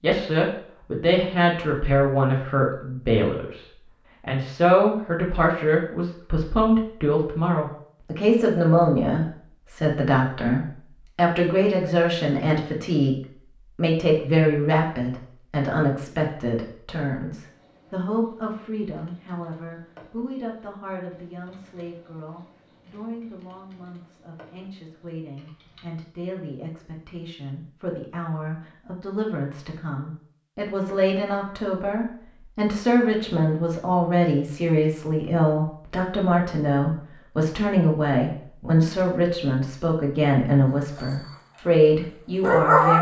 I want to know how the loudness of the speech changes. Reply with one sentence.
The volume of the speech goes down, then up.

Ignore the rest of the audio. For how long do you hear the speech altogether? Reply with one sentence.
You can hear the speech for 42 seconds altogether.